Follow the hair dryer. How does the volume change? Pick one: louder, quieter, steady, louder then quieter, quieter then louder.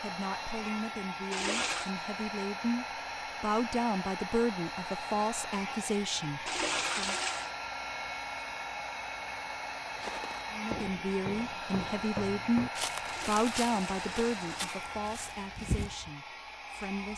steady.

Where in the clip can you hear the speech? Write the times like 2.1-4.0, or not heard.
0.0-7.2, 10.5-17.1.